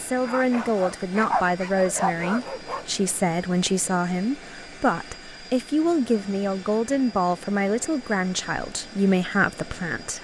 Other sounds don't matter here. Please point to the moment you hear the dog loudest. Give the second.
1 s.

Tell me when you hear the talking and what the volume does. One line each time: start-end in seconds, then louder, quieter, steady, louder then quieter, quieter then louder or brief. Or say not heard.
0.0-10.1 steady.